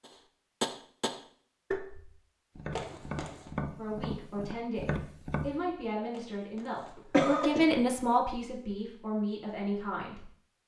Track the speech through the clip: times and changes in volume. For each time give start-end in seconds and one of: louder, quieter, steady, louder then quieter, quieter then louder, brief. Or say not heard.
3.8-10.3 louder then quieter.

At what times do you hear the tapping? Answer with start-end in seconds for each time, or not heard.
0.1-5.5.